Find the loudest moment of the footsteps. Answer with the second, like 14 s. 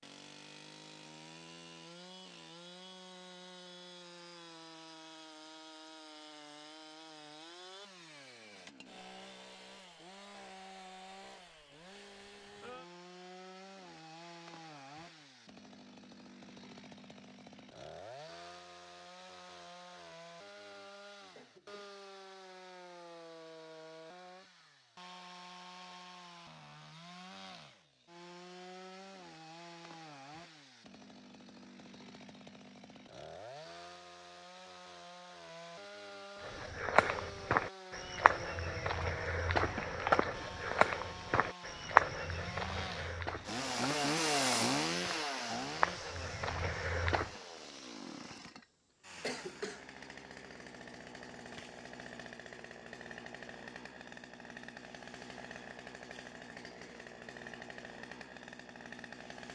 42 s.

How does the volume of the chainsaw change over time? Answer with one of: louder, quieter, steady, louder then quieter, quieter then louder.
louder then quieter.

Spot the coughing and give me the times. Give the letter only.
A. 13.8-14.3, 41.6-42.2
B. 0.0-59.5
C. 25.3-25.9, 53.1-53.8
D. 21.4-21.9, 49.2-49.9
D.